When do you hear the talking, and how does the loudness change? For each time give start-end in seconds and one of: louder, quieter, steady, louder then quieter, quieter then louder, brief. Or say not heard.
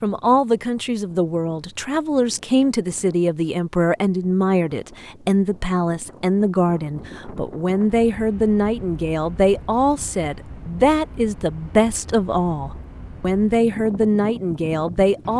0.0-15.3 steady.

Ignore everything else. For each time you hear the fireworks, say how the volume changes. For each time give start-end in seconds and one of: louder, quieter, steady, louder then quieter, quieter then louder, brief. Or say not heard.
not heard.